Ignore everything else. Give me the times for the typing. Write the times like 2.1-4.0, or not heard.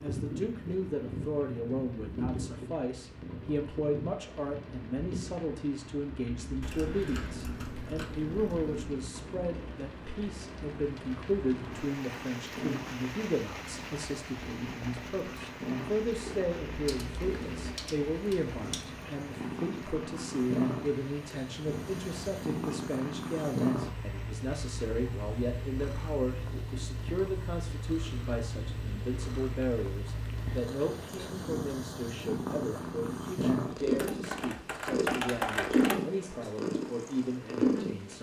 6.6-8.8, 16.9-18.9, 34.0-36.0.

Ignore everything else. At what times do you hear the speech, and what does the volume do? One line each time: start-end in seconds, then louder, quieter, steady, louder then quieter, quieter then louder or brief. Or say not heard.
0.0-38.1 steady.